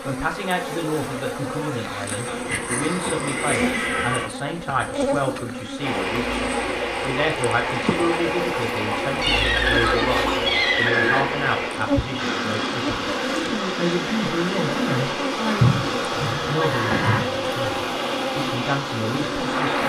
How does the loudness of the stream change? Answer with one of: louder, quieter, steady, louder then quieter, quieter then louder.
steady.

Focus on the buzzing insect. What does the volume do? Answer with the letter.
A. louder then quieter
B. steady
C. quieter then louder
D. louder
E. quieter
B.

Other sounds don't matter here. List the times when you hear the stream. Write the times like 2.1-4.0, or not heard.
5.8-19.8.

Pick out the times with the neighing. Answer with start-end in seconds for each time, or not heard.
2.2-4.2, 9.2-11.2, 15.6-17.2.